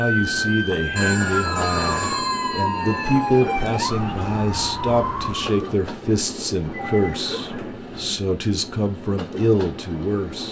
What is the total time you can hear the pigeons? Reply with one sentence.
The pigeons can't be heard in this clip.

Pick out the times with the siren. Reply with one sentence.
You can hear the siren from 0.0 to 5.7 s.